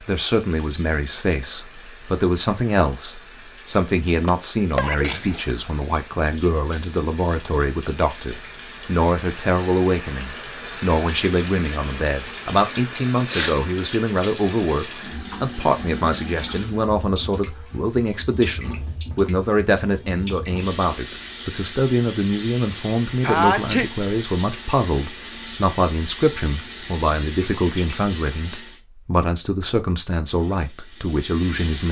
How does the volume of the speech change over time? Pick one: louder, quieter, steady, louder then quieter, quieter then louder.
steady.